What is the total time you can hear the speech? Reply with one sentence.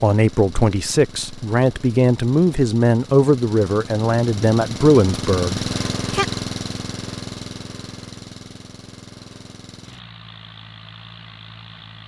The speech can be heard for 6 seconds in total.